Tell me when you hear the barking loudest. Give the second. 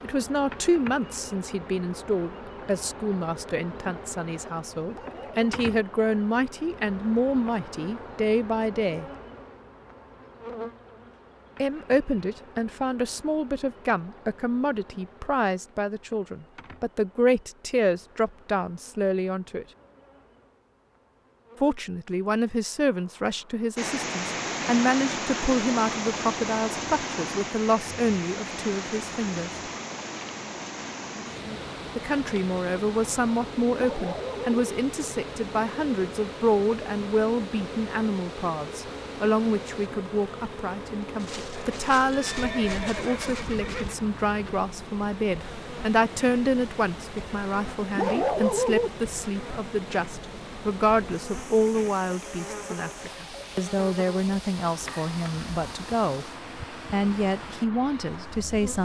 48 s.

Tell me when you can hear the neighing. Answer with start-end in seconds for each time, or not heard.
41.1-44.0.